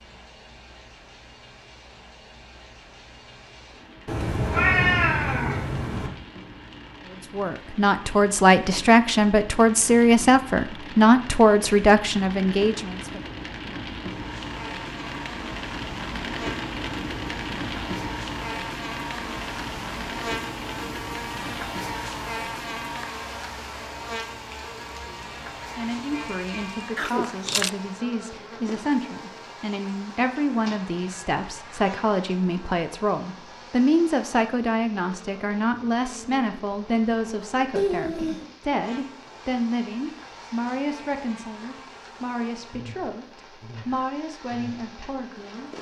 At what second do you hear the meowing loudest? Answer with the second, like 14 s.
5 s.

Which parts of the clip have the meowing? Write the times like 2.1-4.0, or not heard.
4.0-6.1, 37.8-38.5.